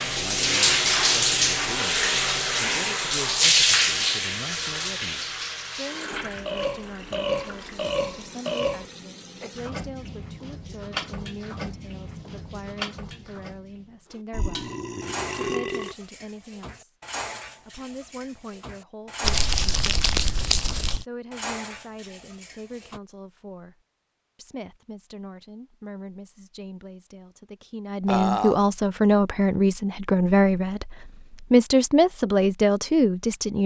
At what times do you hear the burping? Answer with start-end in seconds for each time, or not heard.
6.1-8.8, 14.3-15.9, 28.1-28.6.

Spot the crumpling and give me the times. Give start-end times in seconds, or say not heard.
19.2-21.1.